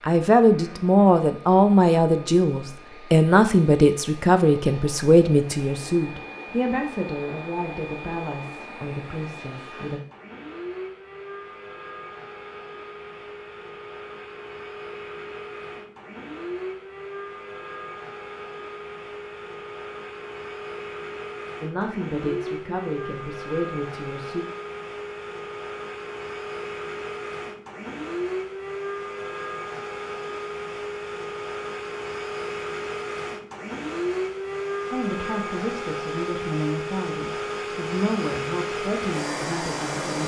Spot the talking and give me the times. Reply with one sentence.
The talking can be heard from 0.0 to 10.0 s, from 21.6 to 24.4 s and from 34.9 to 40.2 s.